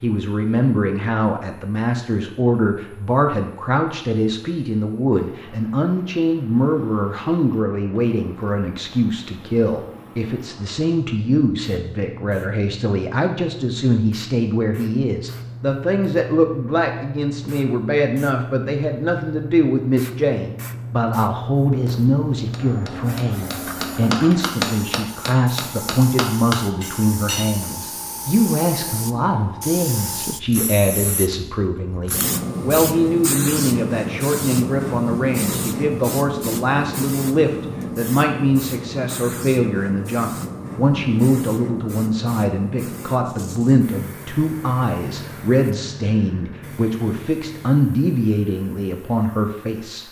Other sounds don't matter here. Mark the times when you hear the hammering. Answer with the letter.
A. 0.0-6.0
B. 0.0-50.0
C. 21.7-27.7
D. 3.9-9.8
C.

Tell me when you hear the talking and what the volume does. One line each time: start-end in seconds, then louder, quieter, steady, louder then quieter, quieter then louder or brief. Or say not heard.
0.0-50.0 steady.